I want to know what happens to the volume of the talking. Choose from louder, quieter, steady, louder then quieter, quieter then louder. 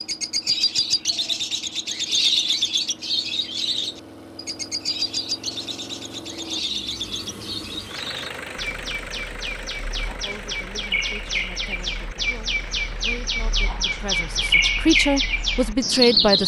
louder.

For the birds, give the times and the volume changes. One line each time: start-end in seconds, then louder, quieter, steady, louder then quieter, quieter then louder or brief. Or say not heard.
0.0-16.4 quieter then louder.